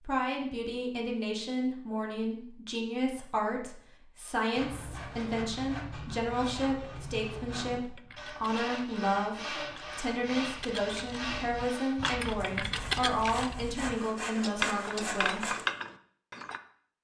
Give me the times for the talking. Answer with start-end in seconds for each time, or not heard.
0.0-15.6.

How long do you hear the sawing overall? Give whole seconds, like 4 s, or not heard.
11 s.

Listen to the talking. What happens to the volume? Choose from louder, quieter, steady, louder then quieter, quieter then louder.
steady.